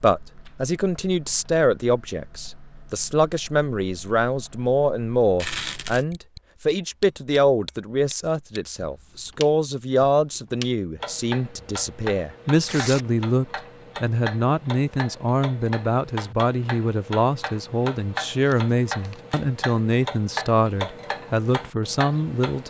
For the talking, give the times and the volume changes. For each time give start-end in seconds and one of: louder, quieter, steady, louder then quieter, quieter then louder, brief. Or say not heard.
0.0-22.6 steady.